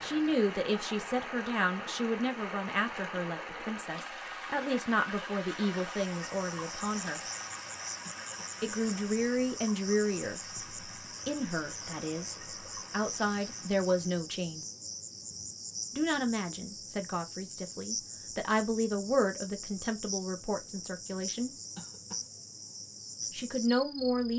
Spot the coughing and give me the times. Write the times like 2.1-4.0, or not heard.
8.0-8.6, 21.8-22.3.